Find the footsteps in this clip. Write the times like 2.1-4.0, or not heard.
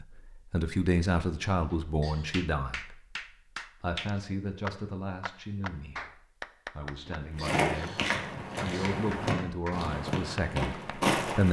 7.3-11.4.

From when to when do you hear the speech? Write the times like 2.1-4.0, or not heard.
0.0-3.1, 3.8-8.0, 8.6-11.4.